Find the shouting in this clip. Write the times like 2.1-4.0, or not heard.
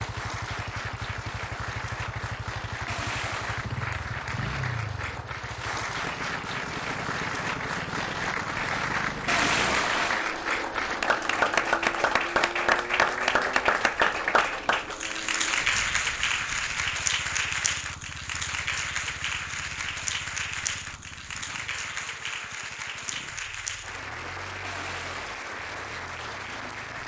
not heard.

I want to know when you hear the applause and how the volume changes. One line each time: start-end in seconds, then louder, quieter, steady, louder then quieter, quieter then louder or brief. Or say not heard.
0.0-27.0 louder then quieter.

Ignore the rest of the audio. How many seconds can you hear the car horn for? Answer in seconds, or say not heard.
3 s.